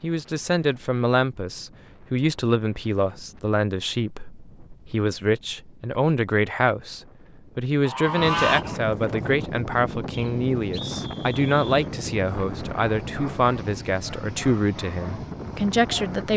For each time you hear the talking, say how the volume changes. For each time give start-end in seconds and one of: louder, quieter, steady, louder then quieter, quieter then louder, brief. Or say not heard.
0.0-16.3 steady.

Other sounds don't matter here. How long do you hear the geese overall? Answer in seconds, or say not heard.
2 s.